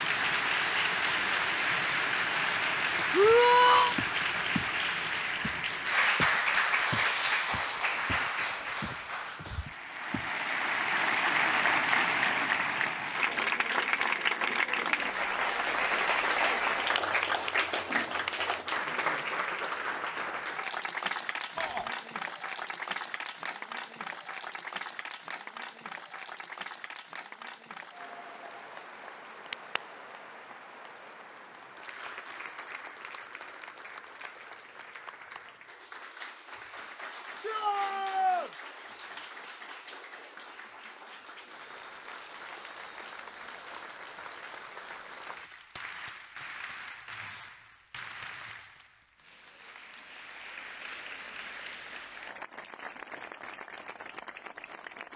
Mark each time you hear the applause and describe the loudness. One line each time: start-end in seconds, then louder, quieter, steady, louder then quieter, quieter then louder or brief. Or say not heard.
0.0-55.1 quieter.